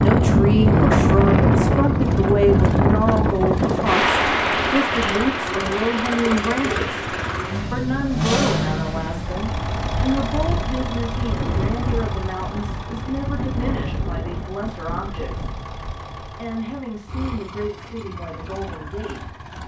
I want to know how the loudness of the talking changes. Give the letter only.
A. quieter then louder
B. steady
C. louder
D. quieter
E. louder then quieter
D.